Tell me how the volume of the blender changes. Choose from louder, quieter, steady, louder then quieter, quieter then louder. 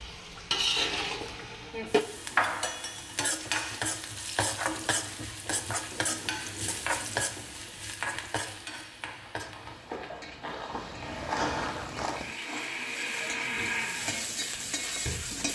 louder then quieter.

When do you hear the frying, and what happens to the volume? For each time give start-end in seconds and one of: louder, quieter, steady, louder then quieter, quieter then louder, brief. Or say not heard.
0.0-15.5 quieter then louder.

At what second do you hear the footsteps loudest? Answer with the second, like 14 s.
11 s.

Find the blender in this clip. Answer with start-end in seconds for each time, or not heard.
11.0-15.5.